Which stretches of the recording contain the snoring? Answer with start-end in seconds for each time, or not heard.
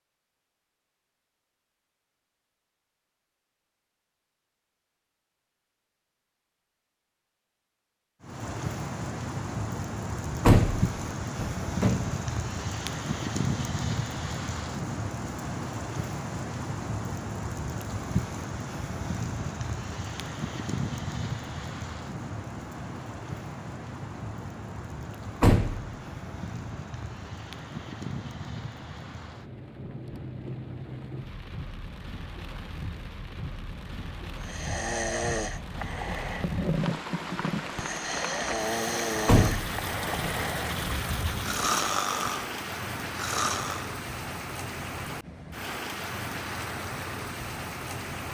34.4-42.5, 43.1-44.0.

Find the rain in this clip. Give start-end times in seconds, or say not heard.
8.2-48.2.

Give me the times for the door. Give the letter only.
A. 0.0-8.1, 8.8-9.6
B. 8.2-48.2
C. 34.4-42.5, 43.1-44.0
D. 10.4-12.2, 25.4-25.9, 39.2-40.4
D.